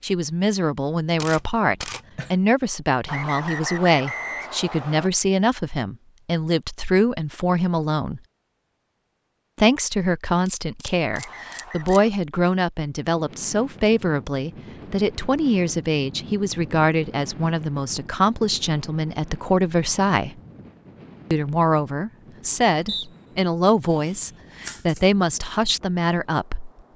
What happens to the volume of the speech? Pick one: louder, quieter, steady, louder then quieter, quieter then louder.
steady.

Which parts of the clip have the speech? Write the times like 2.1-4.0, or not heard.
0.0-8.2, 9.6-20.3, 21.3-26.9.